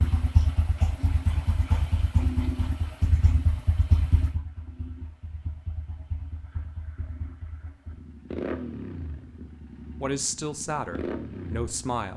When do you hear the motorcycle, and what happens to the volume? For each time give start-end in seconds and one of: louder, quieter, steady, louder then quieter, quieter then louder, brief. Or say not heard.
0.0-12.1 quieter then louder.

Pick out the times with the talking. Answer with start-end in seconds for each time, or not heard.
10.0-12.1.